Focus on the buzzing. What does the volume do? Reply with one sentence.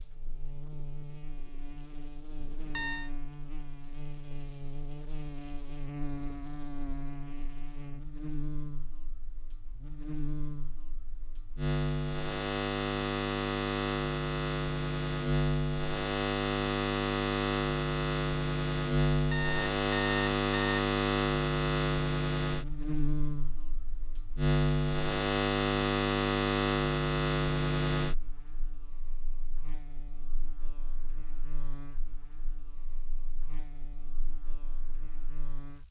The loudness of the buzzing goes up, then down.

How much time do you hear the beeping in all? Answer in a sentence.
The beeping can be heard for 2 seconds in total.